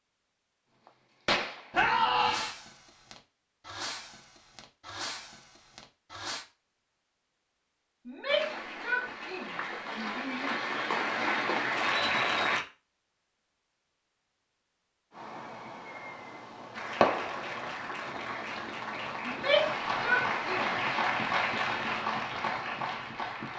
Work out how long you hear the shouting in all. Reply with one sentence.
You can hear the shouting for 5 seconds altogether.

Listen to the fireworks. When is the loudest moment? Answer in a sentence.
The volume of the fireworks peaks at 17 seconds.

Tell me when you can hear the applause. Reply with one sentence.
You can hear the applause from 8.2 to 12.7 s and from 16.7 to 23.5 s.